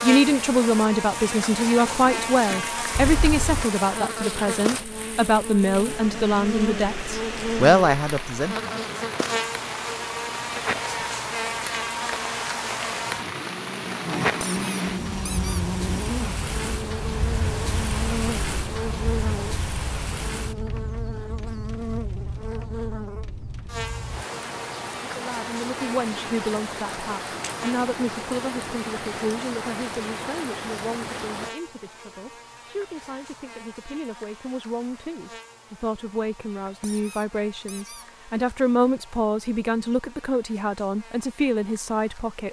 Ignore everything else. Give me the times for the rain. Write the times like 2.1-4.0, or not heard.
0.0-31.6.